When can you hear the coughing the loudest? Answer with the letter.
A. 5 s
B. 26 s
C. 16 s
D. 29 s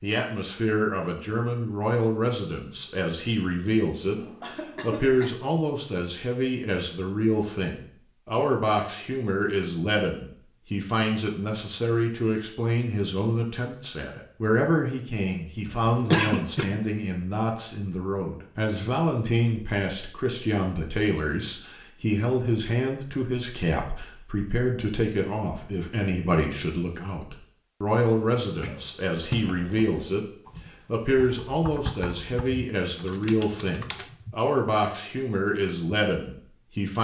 C.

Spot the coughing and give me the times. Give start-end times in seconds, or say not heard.
4.2-5.4, 15.7-16.6, 28.4-28.9.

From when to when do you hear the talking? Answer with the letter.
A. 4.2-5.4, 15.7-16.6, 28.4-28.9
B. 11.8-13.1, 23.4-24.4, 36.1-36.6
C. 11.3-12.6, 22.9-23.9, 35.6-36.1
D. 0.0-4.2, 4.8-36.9
D.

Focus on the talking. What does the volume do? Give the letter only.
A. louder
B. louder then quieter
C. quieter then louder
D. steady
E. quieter
D.